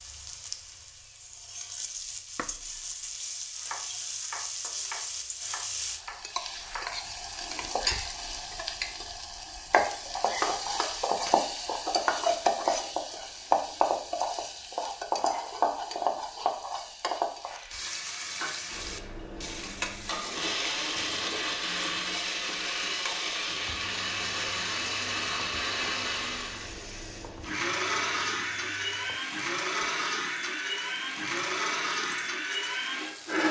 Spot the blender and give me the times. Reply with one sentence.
The blender can be heard from 18.6 to 33.4 s.